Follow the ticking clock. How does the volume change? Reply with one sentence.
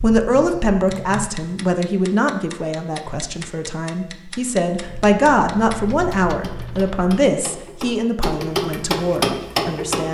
The volume of the ticking clock goes up.